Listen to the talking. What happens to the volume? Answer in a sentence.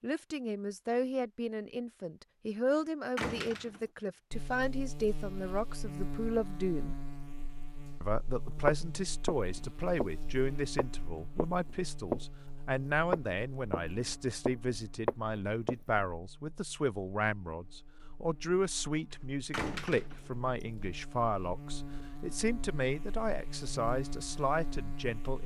The loudness of the talking stays about the same.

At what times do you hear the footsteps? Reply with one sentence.
The footsteps can be heard from 8.7 to 10.1 s, from 10.8 to 12.2 s and from 13.1 to 16.0 s.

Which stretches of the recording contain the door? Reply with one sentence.
You can hear the door from 3.1 to 3.8 s and from 19.5 to 20.3 s.